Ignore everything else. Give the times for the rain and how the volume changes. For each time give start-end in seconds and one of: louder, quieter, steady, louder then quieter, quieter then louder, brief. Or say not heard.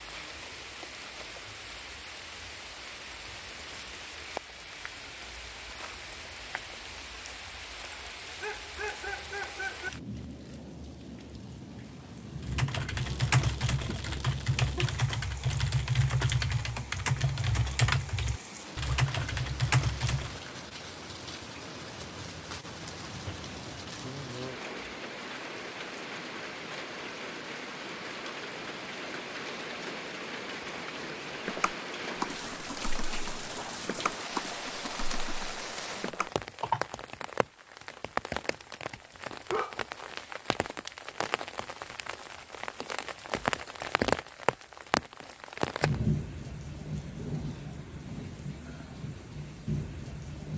0.0-50.5 louder.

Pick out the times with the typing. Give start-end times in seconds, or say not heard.
12.4-20.4, 31.4-36.9.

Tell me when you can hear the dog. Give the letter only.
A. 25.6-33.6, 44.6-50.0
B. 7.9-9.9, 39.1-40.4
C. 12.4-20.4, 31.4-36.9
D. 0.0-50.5
B.